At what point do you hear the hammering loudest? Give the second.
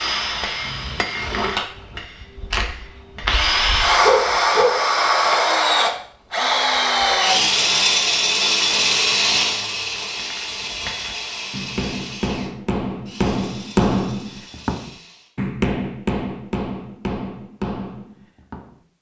14 s.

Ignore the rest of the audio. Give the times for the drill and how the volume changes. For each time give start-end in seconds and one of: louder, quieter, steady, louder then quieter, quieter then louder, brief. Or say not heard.
0.0-15.3 louder then quieter.